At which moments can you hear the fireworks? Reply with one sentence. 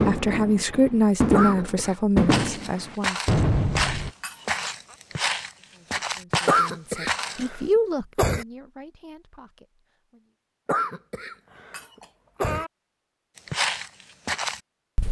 The fireworks can be heard from 0.0 to 4.1 s.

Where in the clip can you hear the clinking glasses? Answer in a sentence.
The clinking glasses can be heard from 4.0 to 5.0 s and from 11.6 to 12.7 s.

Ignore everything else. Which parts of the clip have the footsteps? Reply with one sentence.
The footsteps can be heard from 2.3 to 7.5 s and from 13.3 to 15.0 s.